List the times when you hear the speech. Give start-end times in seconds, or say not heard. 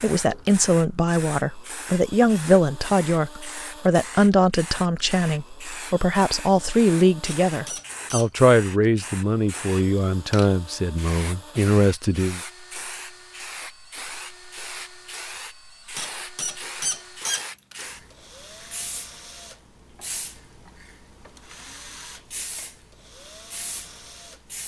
0.0-12.4.